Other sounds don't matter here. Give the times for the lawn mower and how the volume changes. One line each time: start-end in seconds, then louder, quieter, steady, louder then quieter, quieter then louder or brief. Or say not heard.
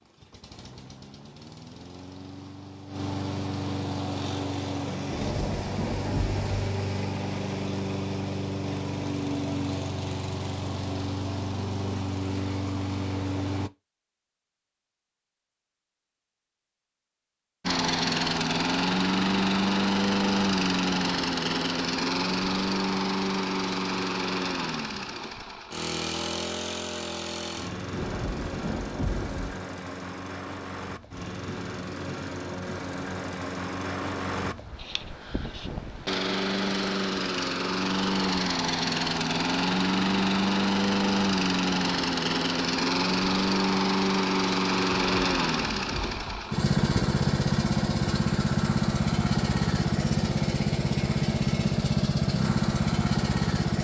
0.0-13.7 louder
17.6-53.7 quieter then louder.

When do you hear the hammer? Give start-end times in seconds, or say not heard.
not heard.